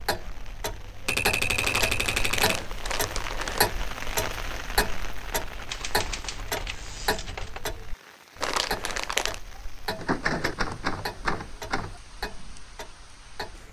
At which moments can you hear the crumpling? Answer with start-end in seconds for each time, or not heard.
1.6-3.6, 8.4-9.4.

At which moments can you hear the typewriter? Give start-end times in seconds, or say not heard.
1.1-2.6, 5.7-7.6, 9.9-12.0.